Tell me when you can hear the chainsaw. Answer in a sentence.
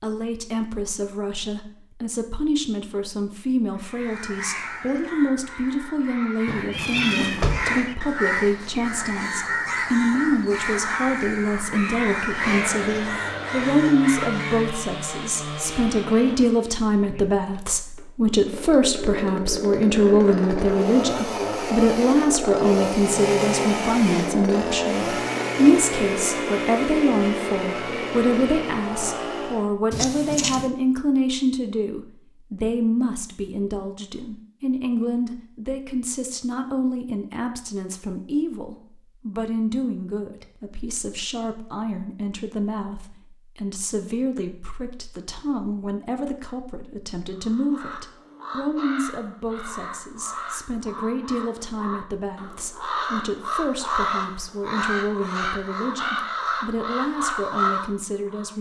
The chainsaw can be heard from 12.2 to 29.7 s.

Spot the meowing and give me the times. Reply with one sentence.
You can hear the meowing from 6.5 to 7.8 s and from 29.9 to 30.7 s.